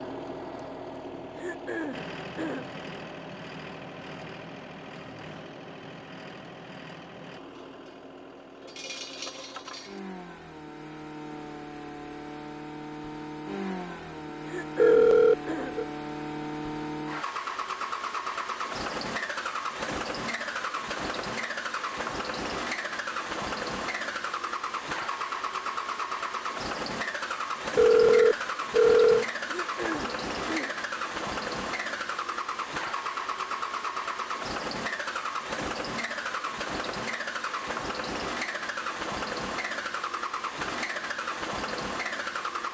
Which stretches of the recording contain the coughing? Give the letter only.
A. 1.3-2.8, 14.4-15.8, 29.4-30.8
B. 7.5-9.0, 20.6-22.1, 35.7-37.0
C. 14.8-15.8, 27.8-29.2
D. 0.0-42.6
A.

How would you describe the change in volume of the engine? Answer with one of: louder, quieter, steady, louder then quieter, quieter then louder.
louder.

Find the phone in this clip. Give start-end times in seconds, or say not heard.
14.8-15.8, 27.8-29.2.